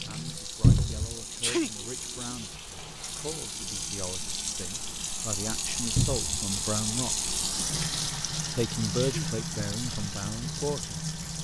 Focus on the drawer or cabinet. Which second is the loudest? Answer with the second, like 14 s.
1 s.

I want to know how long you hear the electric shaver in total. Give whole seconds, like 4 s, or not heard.
not heard.